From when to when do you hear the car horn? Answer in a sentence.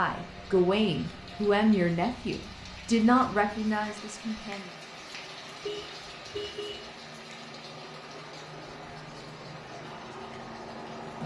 The car horn can be heard from 5.6 to 6.9 s.